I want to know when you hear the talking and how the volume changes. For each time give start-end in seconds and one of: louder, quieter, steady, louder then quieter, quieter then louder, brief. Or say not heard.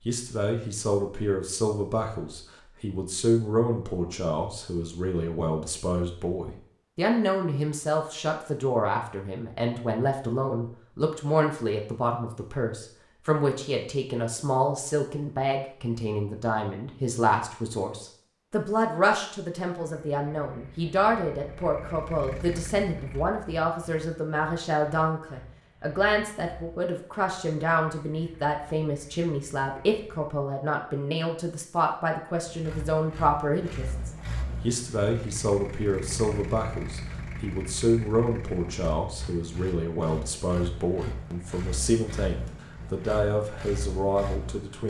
0.1-44.8 steady.